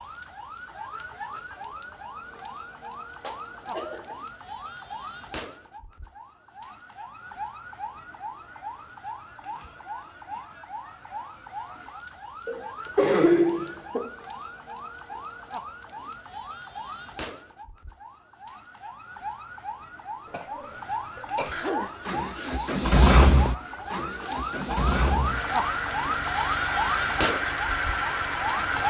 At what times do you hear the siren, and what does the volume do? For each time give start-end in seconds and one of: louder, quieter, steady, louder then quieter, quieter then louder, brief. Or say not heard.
0.0-28.8 louder.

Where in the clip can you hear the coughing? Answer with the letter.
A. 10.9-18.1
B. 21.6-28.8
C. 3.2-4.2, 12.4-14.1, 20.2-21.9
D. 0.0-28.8
C.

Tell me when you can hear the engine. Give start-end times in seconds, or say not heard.
21.6-28.8.